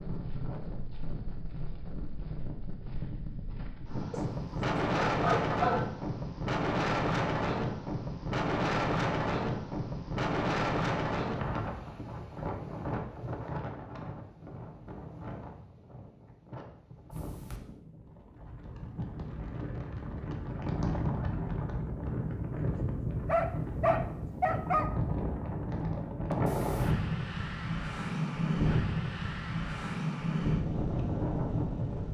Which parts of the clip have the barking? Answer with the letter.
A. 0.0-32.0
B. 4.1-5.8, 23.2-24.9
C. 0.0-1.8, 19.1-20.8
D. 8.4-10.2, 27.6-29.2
B.